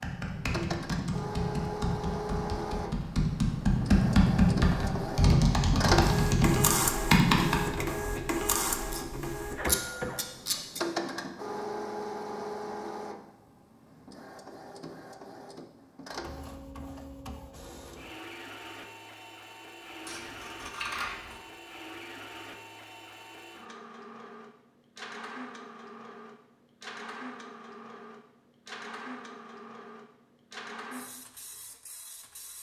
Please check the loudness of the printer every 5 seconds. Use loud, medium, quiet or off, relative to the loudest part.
medium, loud, medium, quiet, quiet, quiet, quiet.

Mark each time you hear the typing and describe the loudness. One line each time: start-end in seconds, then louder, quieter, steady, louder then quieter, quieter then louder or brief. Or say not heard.
0.0-7.8 louder.